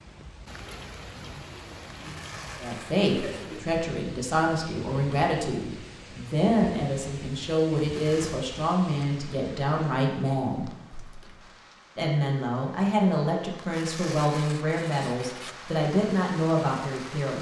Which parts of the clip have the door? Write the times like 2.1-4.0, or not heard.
10.9-11.7.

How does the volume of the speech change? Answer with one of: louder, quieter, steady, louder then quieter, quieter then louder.
steady.